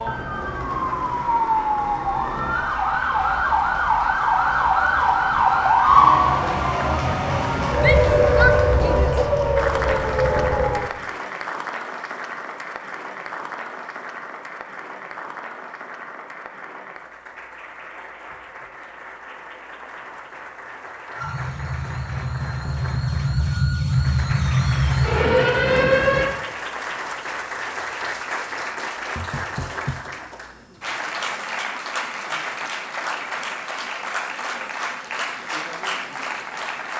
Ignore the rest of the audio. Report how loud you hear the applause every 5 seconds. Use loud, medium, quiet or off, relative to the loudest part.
loud, loud, loud, medium, medium, loud, loud, loud.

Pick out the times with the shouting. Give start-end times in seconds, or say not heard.
7.8-9.2.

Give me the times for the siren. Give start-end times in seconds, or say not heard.
0.0-10.8, 21.1-26.3.